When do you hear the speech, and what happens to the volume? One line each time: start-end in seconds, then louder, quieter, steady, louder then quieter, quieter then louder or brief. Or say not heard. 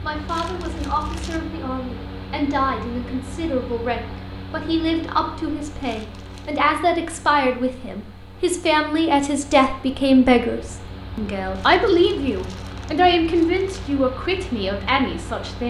0.0-15.6 louder.